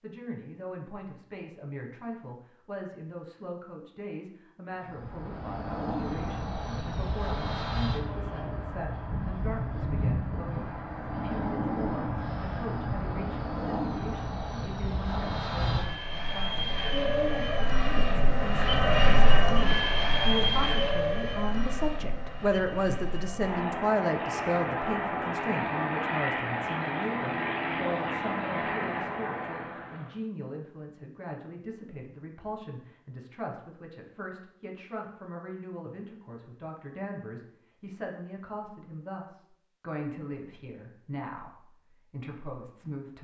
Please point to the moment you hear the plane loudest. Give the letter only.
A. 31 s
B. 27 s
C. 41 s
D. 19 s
D.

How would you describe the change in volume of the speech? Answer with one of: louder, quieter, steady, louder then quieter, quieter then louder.
louder then quieter.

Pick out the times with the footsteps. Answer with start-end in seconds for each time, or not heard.
not heard.